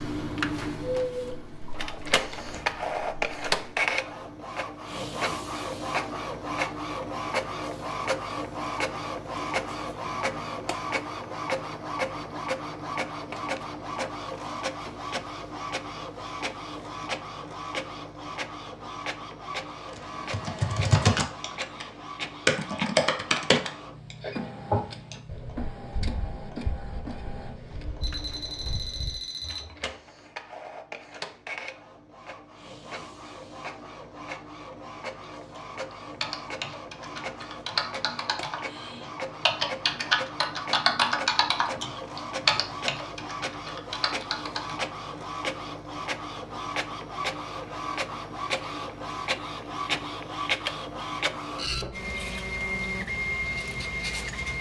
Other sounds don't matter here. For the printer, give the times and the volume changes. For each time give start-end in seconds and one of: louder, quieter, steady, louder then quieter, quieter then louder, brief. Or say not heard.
0.0-54.5 quieter then louder.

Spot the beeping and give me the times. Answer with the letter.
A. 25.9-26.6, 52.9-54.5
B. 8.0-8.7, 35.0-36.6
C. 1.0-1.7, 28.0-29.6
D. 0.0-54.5
C.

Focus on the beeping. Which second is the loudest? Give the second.
1 s.